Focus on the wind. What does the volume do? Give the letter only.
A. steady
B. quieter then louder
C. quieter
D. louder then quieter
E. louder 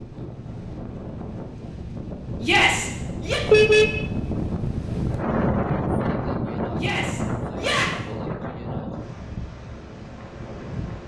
D.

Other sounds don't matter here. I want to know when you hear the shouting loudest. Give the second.
3 s.